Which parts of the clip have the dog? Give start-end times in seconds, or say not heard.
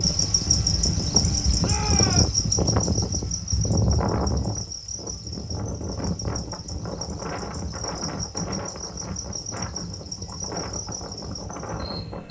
not heard.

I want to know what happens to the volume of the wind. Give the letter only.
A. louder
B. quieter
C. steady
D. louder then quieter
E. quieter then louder
B.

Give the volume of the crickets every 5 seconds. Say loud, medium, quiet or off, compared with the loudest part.
loud, medium, medium.